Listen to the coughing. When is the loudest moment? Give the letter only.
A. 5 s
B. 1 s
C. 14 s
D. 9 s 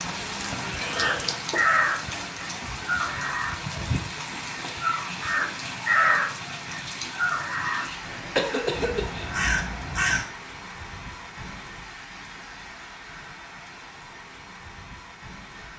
D.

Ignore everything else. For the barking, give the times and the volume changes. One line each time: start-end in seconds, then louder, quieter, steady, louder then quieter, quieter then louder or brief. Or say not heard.
not heard.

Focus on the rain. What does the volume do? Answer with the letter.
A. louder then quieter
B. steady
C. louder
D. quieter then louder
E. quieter
E.